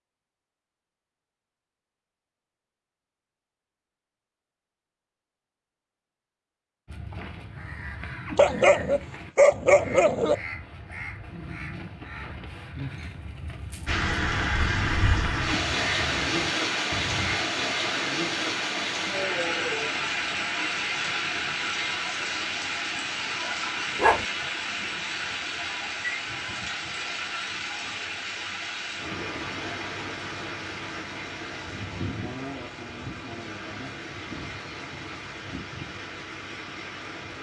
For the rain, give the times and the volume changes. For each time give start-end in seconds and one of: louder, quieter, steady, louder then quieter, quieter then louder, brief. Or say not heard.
13.8-37.3 quieter.